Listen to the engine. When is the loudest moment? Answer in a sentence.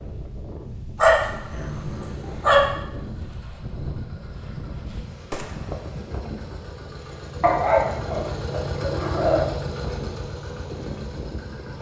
The loudest moment of the engine is at 9 seconds.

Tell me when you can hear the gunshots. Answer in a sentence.
You can hear the gunshots from 5.3 to 6.0 s.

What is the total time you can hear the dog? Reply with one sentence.
The dog can be heard for 4 seconds in total.